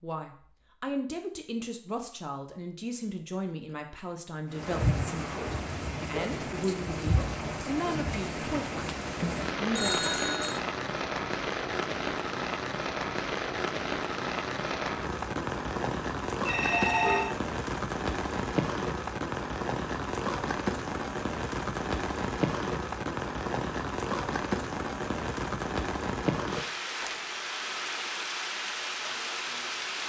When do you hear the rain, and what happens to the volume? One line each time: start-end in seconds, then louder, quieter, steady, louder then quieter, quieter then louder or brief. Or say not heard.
4.5-30.0 steady.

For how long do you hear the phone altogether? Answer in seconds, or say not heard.
2 s.